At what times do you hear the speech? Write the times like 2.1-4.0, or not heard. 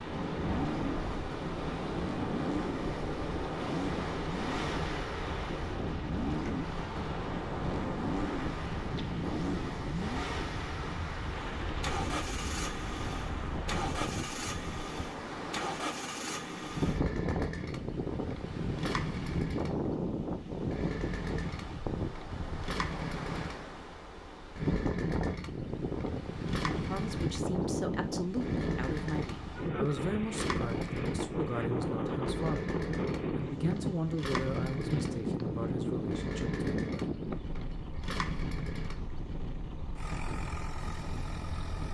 26.9-37.1.